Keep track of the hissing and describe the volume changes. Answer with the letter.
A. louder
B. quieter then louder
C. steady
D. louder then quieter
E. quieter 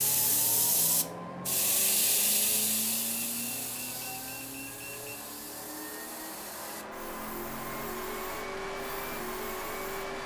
E.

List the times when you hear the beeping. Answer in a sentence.
The beeping can be heard from 3.1 to 5.2 s.